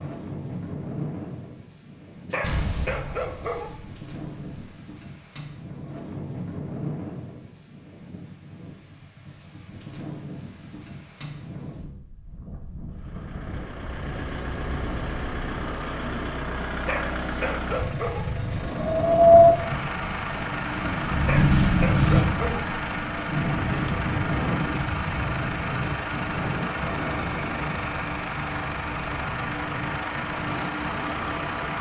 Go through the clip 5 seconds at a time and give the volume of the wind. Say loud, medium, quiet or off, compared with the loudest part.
quiet, quiet, quiet, loud, medium, quiet, quiet.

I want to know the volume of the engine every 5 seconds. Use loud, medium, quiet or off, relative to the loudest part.
off, off, medium, loud, loud, loud, loud.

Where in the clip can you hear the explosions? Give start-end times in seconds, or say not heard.
2.4-4.5.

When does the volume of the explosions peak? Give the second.
3 s.